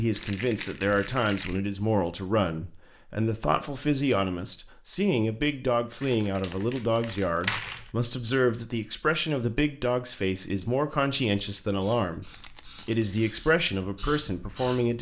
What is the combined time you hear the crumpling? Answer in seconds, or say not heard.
4 s.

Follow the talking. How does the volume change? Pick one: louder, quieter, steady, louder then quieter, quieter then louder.
steady.